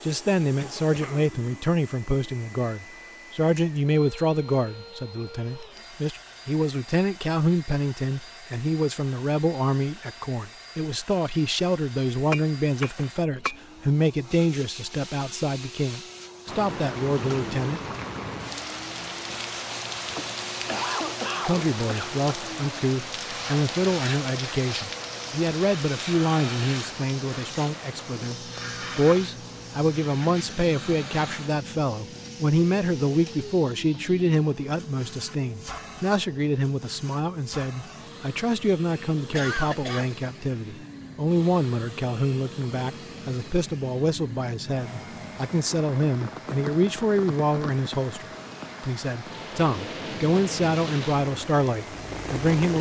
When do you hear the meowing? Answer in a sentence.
You can't hear the meowing here.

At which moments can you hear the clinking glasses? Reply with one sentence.
You can hear the clinking glasses from 12.3 to 13.6 s.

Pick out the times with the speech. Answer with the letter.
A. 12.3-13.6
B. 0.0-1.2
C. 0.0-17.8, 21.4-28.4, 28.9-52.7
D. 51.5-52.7
C.